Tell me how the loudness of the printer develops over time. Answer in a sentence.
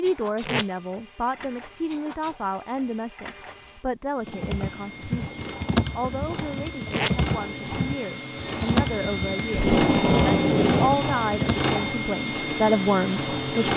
The loudness of the printer goes up.